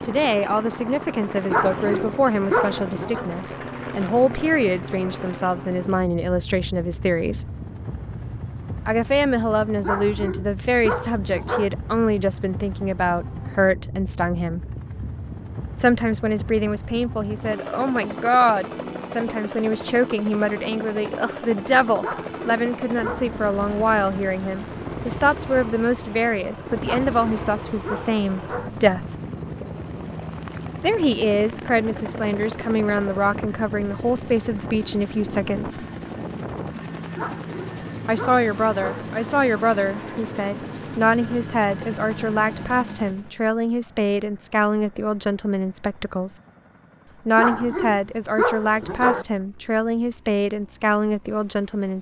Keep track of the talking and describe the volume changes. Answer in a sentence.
The loudness of the talking stays about the same.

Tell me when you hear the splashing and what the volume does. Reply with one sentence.
You can't hear the splashing here.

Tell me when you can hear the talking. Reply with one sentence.
You can hear the talking from 0.1 to 7.5 s, from 8.8 to 14.6 s, from 15.8 to 29.1 s, from 30.8 to 35.9 s, from 38.0 to 46.4 s and from 47.2 to 51.9 s.